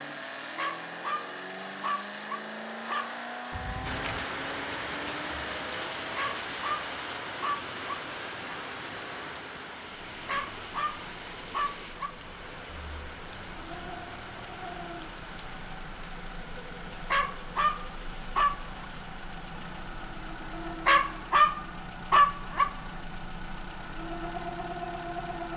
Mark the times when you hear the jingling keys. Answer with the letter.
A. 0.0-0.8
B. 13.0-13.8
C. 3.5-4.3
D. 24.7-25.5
C.